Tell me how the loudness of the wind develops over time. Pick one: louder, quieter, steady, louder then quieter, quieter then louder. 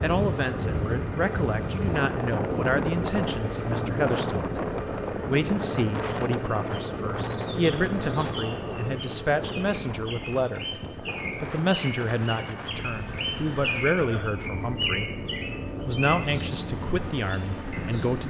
quieter.